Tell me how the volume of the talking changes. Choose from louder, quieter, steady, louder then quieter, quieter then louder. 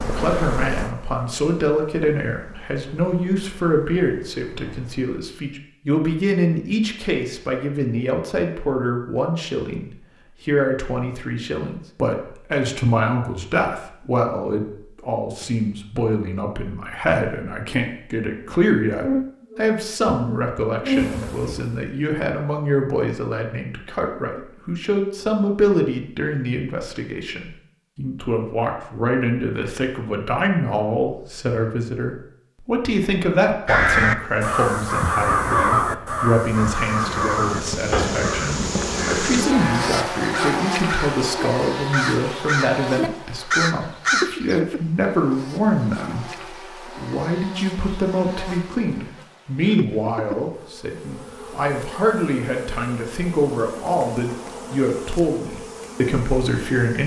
steady.